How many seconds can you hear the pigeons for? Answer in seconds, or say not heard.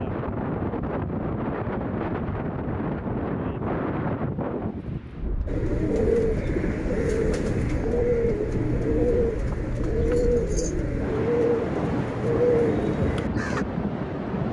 8 s.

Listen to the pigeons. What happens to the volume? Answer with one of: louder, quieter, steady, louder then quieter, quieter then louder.
steady.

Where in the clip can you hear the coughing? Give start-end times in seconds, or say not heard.
not heard.